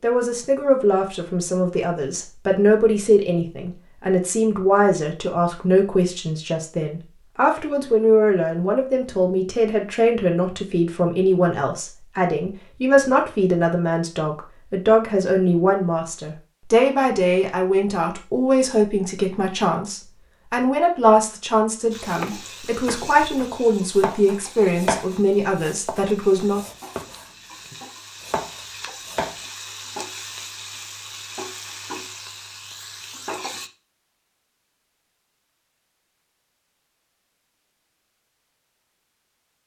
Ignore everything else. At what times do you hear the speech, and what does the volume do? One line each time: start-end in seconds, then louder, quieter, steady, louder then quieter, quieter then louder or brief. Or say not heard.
0.0-26.6 steady.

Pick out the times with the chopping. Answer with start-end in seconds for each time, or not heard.
22.1-29.4.